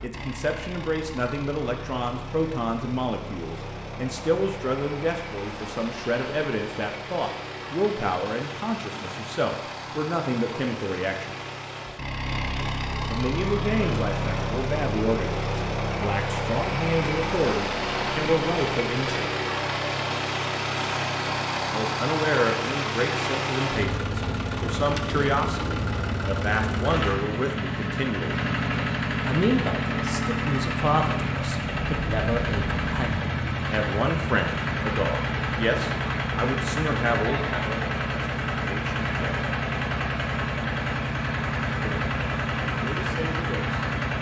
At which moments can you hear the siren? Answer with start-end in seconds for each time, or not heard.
not heard.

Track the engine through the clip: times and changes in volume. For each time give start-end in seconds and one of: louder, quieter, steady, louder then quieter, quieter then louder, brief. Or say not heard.
0.0-44.1 louder.